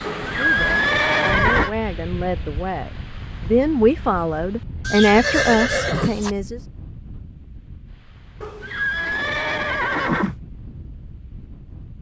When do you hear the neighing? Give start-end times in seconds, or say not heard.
0.0-1.7, 4.8-6.3, 8.4-10.3.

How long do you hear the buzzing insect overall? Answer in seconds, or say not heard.
not heard.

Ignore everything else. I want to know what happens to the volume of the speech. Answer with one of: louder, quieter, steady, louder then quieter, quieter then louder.
louder.